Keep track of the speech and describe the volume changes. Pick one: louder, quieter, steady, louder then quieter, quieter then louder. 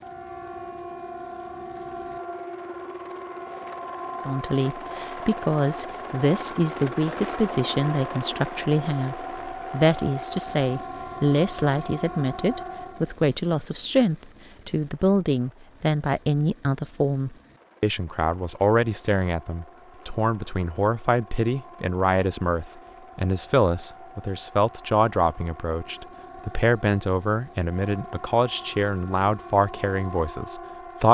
steady.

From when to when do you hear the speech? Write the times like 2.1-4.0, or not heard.
4.2-31.0.